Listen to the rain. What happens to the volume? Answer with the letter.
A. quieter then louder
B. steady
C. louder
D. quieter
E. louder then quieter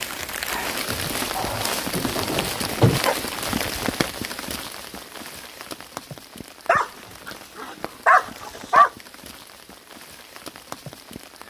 D.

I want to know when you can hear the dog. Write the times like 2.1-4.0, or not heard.
1.4-3.1, 6.7-8.9.